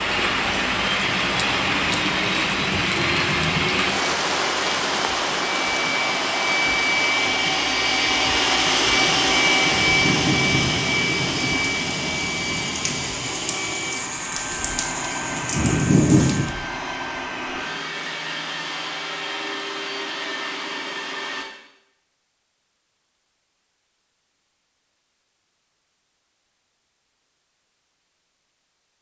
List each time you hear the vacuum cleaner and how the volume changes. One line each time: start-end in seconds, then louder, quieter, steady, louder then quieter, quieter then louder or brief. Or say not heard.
0.1-21.4 louder then quieter.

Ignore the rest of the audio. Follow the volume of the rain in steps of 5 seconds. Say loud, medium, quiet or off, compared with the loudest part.
loud, medium, medium, loud, off, off.